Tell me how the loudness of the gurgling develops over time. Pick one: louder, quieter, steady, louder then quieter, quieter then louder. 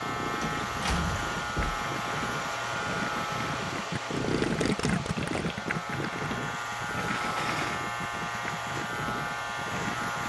louder then quieter.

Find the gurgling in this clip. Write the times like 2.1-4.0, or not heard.
0.0-10.2.